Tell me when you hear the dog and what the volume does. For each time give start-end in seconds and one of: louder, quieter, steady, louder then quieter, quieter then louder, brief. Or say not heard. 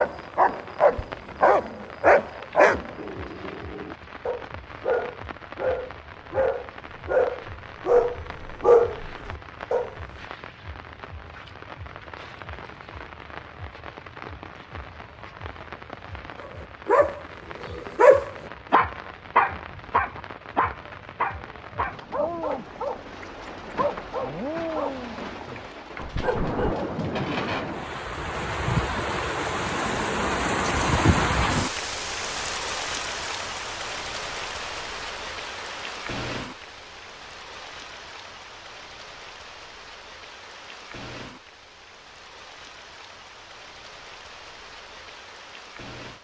0.0-9.9 quieter then louder
16.4-26.8 quieter.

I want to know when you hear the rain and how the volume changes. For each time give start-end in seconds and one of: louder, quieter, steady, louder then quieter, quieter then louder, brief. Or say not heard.
0.0-46.1 louder then quieter.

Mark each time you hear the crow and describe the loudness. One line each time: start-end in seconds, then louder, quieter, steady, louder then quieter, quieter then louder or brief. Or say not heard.
not heard.